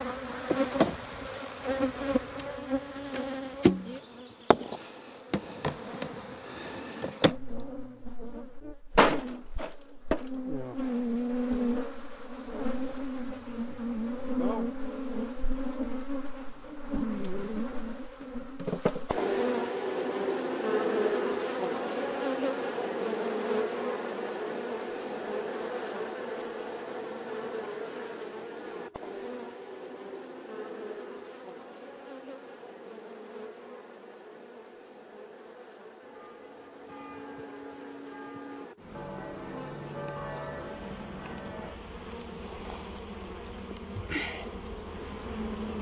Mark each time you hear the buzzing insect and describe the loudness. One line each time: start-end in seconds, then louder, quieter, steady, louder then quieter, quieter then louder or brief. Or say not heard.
0.0-45.7 quieter.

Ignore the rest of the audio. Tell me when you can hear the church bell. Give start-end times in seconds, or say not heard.
36.0-41.8.